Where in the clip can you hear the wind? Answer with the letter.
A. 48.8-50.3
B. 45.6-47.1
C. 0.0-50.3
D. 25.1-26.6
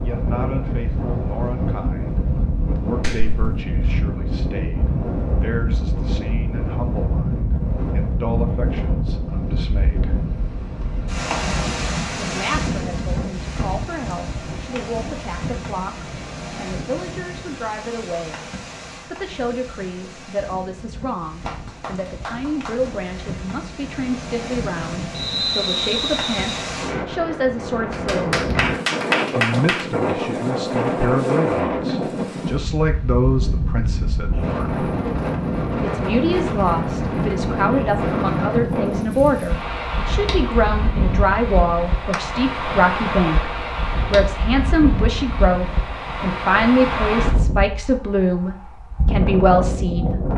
C.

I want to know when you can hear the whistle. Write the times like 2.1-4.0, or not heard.
25.1-26.6.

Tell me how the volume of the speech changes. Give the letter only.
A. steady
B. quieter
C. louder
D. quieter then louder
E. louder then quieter
C.